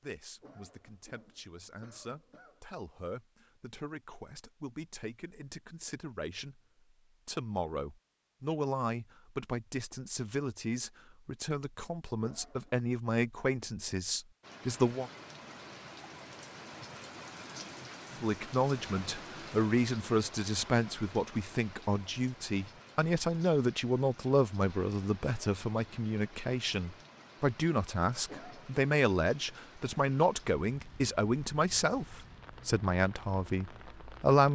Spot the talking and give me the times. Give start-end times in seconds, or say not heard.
0.0-6.6, 7.2-15.1, 18.2-34.5.